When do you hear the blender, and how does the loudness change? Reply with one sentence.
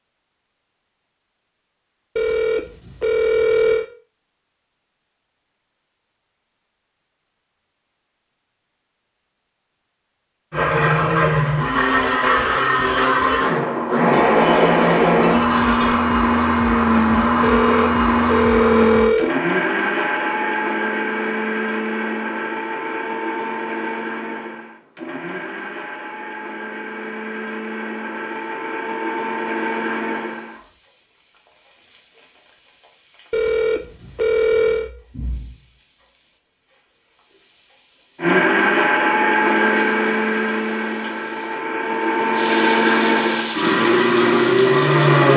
The blender can be heard from 10.5 to 30.6 s, getting quieter; and from 38.1 to 45.3 s, getting quieter then louder.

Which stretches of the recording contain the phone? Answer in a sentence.
The phone can be heard from 2.1 to 3.9 s, from 17.4 to 19.3 s and from 33.3 to 34.9 s.